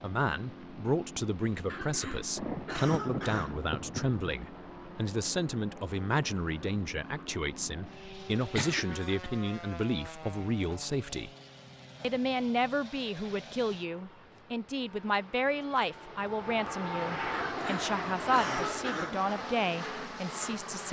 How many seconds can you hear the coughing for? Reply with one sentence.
You can hear the coughing for 5 seconds altogether.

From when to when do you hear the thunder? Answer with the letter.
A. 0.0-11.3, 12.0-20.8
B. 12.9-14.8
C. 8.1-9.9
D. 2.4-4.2
D.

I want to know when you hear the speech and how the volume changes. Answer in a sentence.
The speech can be heard from 0.0 to 11.3 s, at a steady volume; and from 12.0 to 20.8 s, at a steady volume.